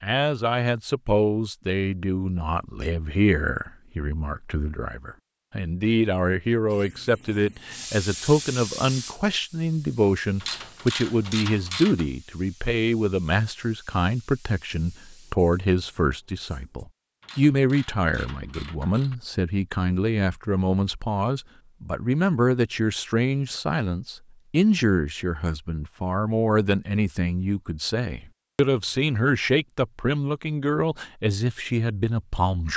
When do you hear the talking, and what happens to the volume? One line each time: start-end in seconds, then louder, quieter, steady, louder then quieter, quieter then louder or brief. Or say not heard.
0.0-32.7 steady.